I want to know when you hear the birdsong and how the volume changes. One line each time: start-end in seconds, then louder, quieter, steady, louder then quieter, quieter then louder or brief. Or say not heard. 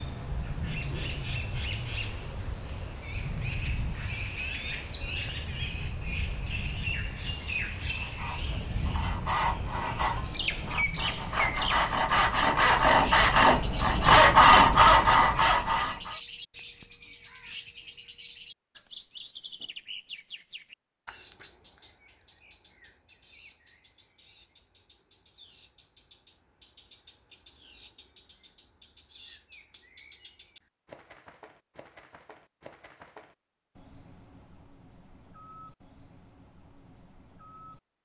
0.0-38.0 quieter.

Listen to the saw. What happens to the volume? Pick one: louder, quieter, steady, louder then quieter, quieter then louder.
louder.